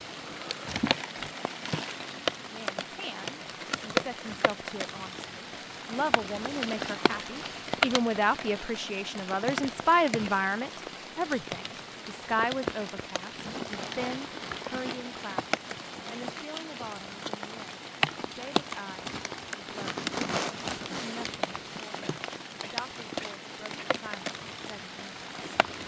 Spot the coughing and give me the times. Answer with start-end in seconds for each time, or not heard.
22.0-23.9.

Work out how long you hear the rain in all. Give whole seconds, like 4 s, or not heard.
26 s.